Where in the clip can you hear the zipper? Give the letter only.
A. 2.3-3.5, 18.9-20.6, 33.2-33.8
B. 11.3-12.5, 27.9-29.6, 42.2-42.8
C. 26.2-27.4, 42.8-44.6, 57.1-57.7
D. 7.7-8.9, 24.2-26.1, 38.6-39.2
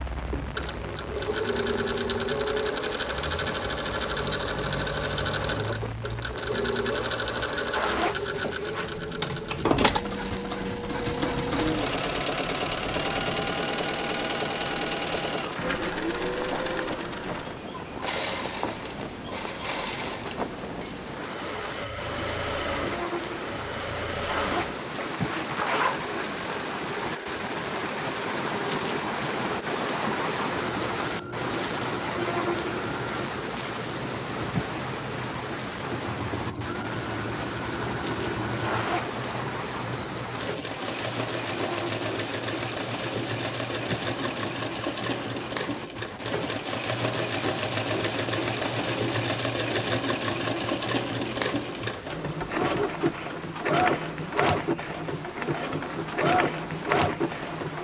D.